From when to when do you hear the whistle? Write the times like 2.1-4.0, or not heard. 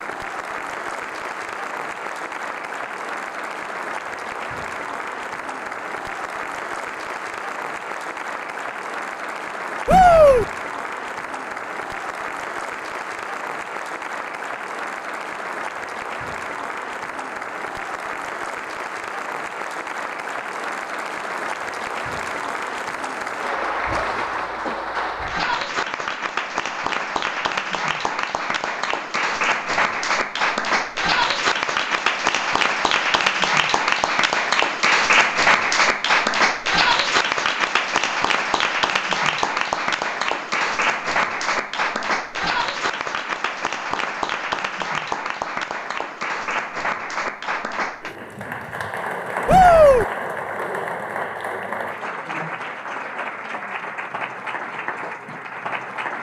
not heard.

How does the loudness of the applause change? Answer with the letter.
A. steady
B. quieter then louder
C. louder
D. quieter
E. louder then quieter
E.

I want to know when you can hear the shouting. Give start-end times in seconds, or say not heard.
9.8-10.4, 49.5-50.0.